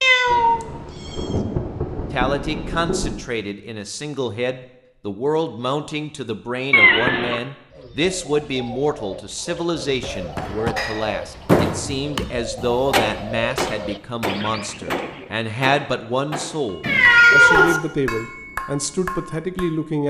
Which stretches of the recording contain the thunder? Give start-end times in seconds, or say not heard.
0.2-3.1.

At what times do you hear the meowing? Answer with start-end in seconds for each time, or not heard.
0.0-1.2, 6.7-7.4, 16.8-17.8.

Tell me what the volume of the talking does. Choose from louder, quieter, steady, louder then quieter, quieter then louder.
steady.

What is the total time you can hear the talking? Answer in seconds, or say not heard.
18 s.